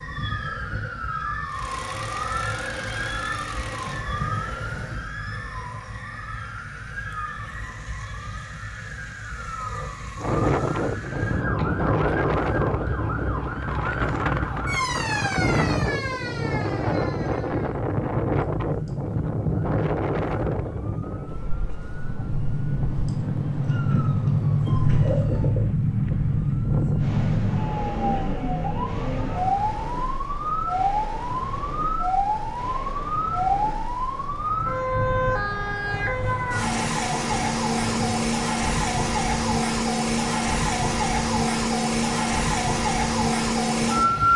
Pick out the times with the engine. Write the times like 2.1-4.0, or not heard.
1.4-5.1.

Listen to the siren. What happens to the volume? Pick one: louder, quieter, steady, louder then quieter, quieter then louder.
louder.